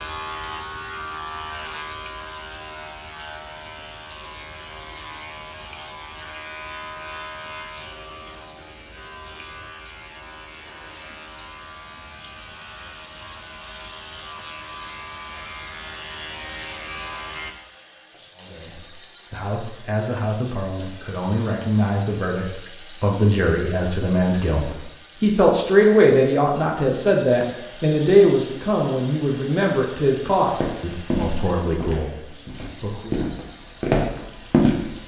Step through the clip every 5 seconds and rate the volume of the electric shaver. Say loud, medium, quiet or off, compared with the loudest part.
loud, loud, medium, loud, off, off, off.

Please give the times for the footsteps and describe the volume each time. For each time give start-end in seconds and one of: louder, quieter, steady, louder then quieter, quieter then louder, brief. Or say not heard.
30.6-35.0 quieter then louder.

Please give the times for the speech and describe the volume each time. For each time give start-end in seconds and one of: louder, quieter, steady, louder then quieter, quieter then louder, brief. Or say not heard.
18.4-33.2 louder then quieter.